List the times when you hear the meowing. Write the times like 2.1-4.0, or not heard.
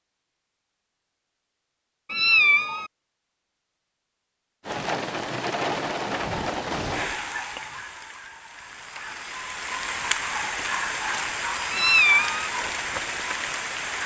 2.1-2.9, 11.7-12.5.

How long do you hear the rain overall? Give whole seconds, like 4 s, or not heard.
9 s.